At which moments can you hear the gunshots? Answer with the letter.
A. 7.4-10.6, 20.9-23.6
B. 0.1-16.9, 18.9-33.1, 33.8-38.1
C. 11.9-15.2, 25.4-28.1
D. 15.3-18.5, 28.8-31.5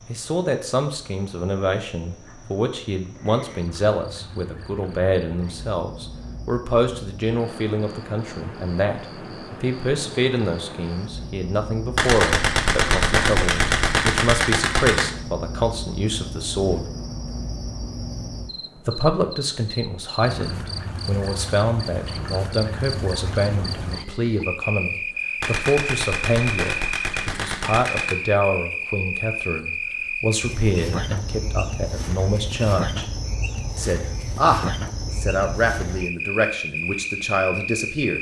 C.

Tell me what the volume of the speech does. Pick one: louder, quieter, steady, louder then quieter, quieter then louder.
steady.